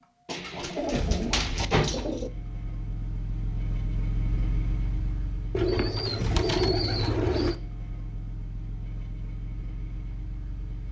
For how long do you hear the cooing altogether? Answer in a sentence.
The cooing can be heard for 4 seconds in total.